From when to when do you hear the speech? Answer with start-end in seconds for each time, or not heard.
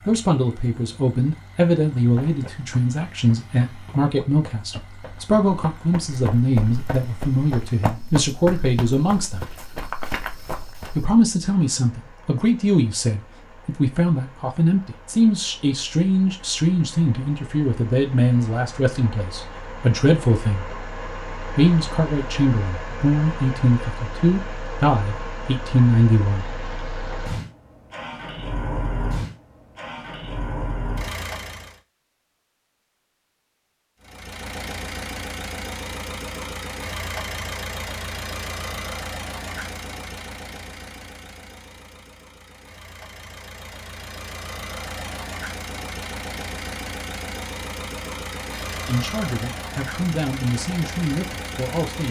0.0-9.4, 10.9-20.6, 21.6-26.4, 48.9-52.0.